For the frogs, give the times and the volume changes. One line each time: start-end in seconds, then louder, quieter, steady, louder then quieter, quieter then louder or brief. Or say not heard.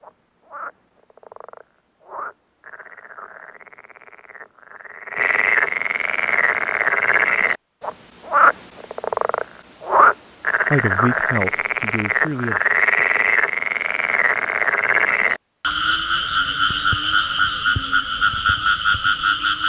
0.0-19.6 louder.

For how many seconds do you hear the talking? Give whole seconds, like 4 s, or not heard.
2 s.